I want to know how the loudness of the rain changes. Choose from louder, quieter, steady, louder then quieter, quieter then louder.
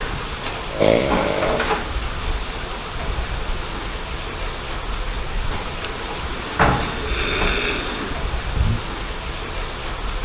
steady.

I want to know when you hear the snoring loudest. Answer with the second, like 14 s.
1 s.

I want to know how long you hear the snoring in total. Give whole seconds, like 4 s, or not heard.
4 s.